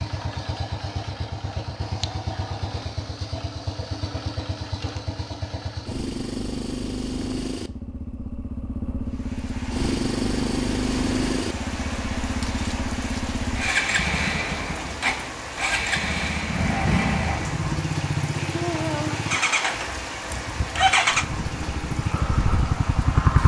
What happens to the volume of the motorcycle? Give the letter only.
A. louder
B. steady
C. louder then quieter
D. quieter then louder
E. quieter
A.